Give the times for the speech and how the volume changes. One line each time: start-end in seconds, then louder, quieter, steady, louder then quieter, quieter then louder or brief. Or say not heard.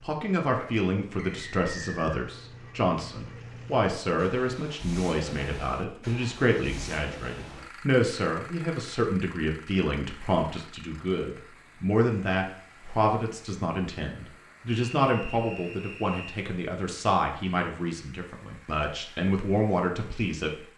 0.0-20.5 steady.